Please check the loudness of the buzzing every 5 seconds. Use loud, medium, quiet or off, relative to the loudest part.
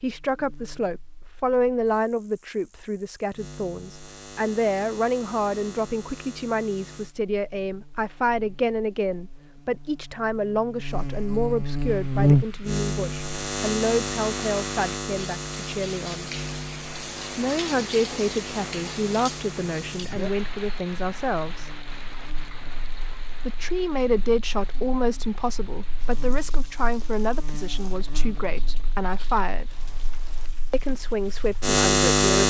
quiet, quiet, loud, quiet, quiet, quiet, loud.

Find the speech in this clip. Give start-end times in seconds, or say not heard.
0.0-16.3, 17.4-21.8, 23.4-29.8, 30.7-32.4.